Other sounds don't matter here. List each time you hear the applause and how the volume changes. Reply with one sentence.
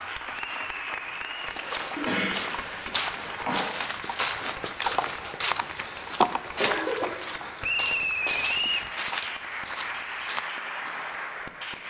The applause can be heard from 0.0 to 11.8 s, getting quieter then louder.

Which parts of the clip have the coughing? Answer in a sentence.
You can hear the coughing from 1.9 to 3.8 s and from 6.5 to 7.2 s.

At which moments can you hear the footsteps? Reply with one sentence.
You can hear the footsteps from 1.4 to 10.4 s.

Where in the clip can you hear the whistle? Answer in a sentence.
You can hear the whistle from 0.3 to 1.6 s and from 7.6 to 8.9 s.